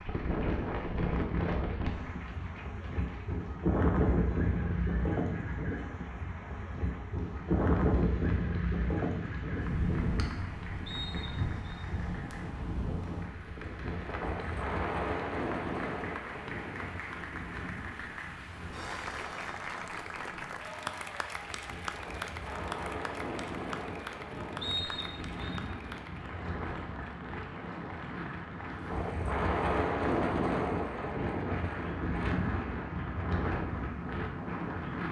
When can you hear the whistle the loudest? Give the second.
25 s.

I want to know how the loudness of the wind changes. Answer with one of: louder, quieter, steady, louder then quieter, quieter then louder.
quieter then louder.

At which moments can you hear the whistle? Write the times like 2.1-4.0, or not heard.
10.8-11.8, 24.6-25.6.